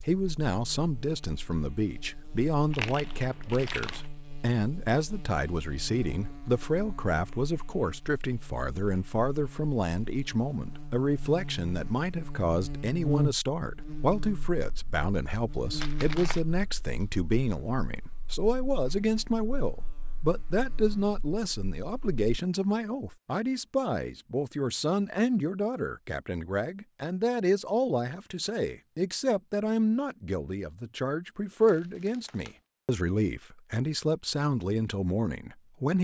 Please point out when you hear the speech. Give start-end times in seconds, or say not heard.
0.1-35.9.